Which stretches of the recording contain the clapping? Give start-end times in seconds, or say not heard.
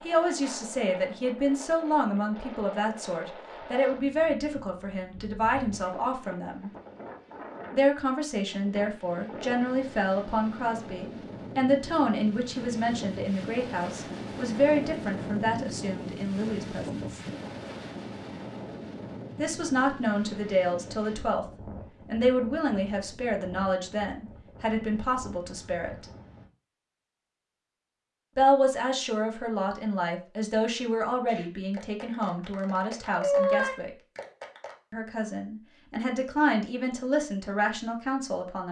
31.2-34.8.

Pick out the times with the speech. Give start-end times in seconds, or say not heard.
0.0-6.7, 7.7-17.2, 19.4-21.4, 22.1-26.1, 28.4-33.9, 34.9-38.6.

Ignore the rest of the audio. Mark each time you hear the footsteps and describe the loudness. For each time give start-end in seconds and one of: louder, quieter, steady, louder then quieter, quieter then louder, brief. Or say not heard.
not heard.